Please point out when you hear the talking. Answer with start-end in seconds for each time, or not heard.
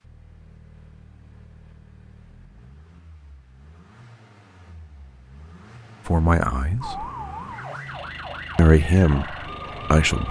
6.0-7.0, 8.6-10.2.